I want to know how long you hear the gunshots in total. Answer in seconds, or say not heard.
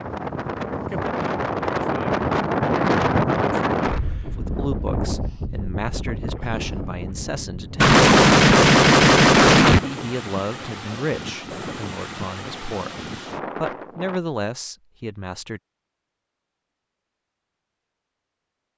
2 s.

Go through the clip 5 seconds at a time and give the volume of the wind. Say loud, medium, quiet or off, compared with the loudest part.
loud, medium, medium, off.